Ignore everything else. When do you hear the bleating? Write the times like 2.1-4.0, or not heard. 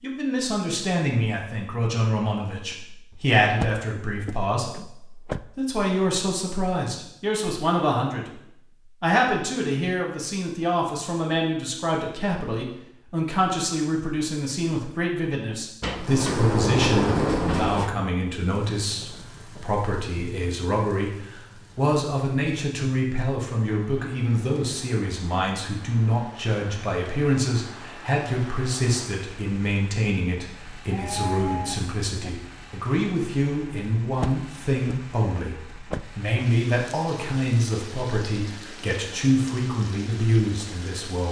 30.9-32.3.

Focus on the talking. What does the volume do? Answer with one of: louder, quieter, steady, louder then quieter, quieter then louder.
steady.